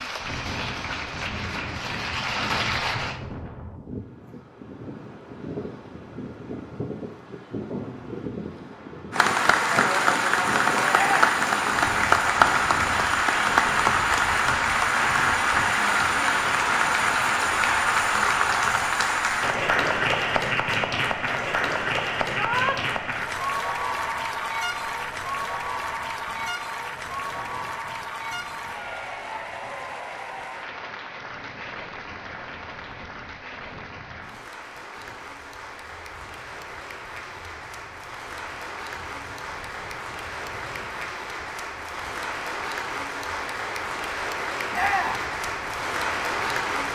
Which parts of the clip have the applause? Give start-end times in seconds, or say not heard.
0.0-3.2, 9.1-46.9.